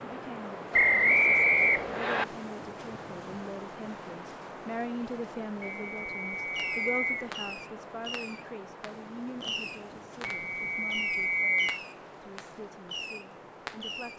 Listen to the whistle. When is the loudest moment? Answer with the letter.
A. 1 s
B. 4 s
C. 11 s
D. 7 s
A.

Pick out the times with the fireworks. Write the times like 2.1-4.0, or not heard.
6.5-14.1.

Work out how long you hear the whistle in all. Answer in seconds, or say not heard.
5 s.